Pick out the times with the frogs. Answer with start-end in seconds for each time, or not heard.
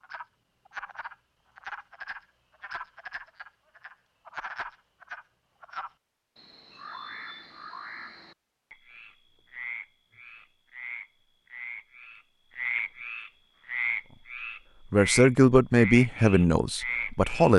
0.0-17.5.